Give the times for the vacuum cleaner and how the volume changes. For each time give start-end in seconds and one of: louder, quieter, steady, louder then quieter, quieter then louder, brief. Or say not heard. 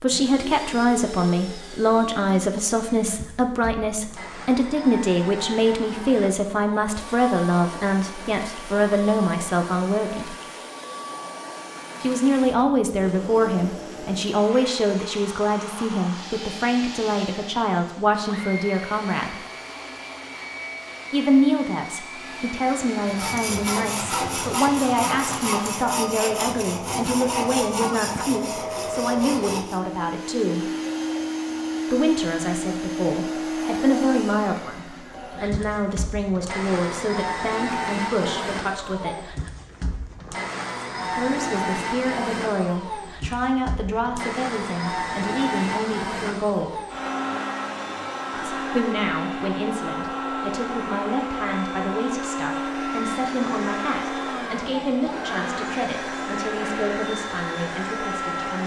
0.0-58.6 louder.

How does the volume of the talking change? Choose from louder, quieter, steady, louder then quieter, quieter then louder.
quieter.